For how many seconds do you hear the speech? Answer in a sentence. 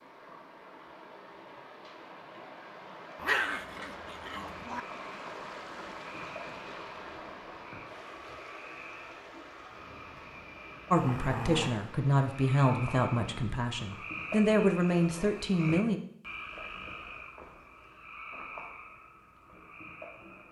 You can hear the speech for 5 seconds altogether.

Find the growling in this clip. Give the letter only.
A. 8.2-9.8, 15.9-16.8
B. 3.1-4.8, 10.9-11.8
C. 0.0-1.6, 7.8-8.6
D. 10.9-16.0
B.